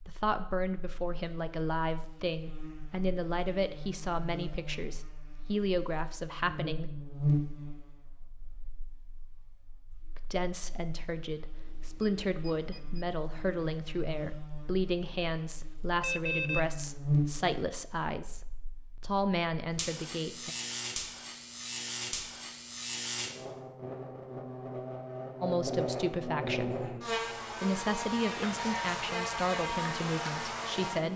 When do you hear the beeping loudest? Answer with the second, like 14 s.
16 s.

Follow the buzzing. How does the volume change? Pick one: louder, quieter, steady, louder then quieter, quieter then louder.
louder.